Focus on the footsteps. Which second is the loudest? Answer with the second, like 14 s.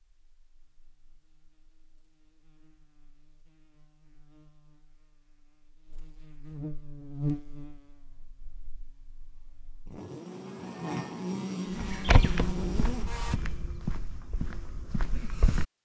12 s.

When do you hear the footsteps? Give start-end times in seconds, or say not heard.
11.7-15.7.